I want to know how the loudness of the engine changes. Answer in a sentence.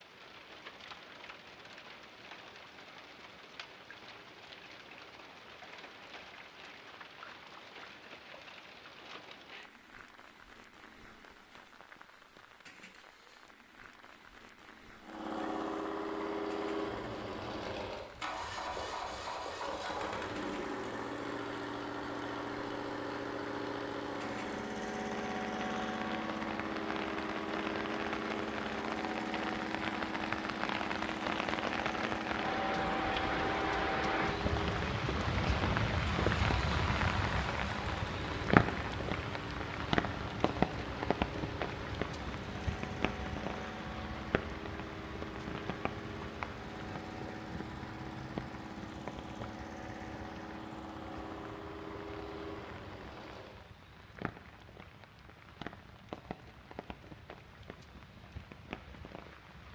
The loudness of the engine goes down.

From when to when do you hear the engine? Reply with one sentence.
You can hear the engine from 15.0 to 53.6 s.